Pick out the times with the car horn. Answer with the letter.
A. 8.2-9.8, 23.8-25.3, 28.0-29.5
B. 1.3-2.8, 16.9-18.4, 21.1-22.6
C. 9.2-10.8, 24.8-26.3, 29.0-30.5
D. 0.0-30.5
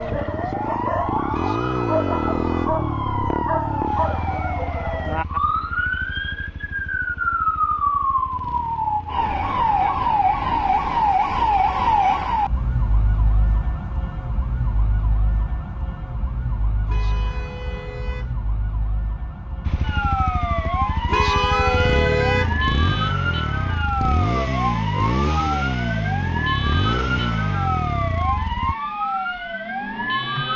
B.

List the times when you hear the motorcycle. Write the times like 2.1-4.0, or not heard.
0.0-10.3, 19.6-28.8.